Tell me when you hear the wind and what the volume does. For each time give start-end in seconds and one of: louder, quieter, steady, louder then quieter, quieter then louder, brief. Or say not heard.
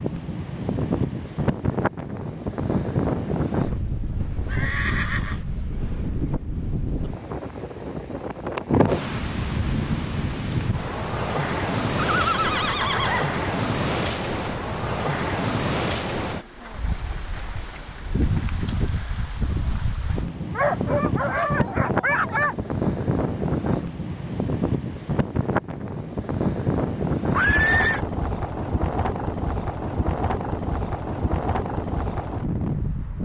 0.0-33.2 steady.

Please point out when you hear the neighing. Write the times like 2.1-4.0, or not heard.
4.5-5.5, 12.0-13.4, 27.3-28.0.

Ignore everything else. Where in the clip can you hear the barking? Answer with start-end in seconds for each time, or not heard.
20.6-22.6.